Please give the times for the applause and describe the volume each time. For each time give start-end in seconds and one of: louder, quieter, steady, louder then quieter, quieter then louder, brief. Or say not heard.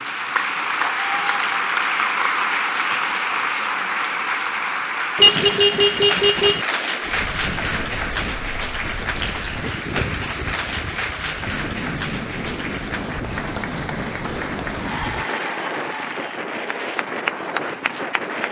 0.0-18.4 quieter.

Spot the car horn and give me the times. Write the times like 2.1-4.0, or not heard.
5.2-6.7.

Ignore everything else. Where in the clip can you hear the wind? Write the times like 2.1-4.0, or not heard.
7.0-18.4.